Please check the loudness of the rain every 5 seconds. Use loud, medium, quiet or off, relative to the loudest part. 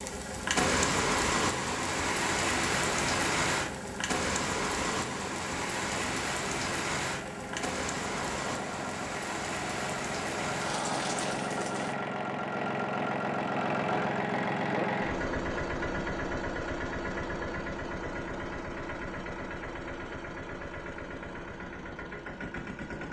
loud, medium, medium, off, off.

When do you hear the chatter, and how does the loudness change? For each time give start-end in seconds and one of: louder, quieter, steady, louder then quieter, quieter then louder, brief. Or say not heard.
not heard.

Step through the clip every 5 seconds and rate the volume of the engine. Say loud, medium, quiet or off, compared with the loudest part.
medium, medium, loud, loud, medium.